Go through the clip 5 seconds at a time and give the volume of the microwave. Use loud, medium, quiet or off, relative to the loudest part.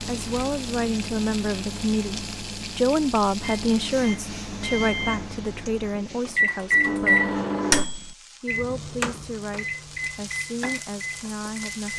medium, loud, medium.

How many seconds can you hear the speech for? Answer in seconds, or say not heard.
12 s.